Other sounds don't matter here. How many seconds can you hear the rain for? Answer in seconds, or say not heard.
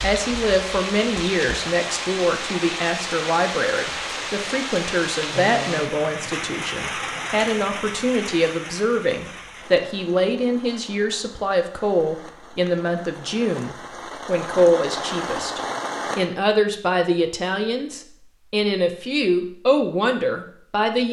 16 s.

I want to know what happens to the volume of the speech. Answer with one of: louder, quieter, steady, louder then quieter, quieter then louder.
steady.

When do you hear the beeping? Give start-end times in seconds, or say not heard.
not heard.